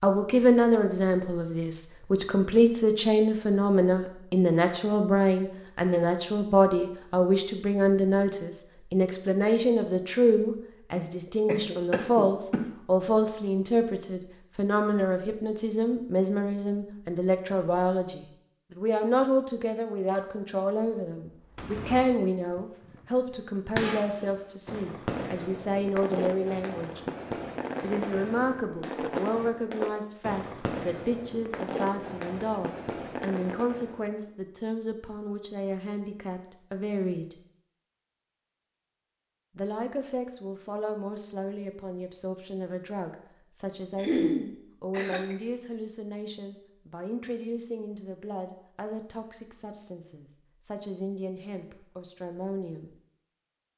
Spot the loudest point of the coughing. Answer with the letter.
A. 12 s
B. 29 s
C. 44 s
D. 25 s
C.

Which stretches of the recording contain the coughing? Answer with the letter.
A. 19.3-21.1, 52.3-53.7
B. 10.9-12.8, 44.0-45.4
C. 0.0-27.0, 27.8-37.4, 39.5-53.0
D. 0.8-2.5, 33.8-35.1
B.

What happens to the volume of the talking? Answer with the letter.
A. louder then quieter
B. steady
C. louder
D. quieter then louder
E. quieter
E.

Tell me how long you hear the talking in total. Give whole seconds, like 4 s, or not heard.
50 s.